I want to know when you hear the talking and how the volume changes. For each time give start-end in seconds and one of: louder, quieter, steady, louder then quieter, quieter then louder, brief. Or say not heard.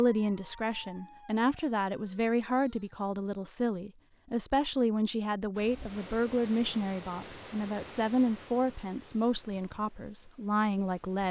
0.0-11.2 steady.